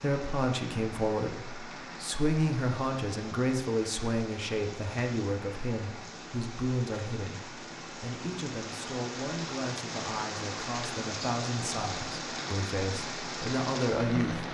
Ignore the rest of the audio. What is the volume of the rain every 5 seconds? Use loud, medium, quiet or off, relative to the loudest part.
medium, medium, loud.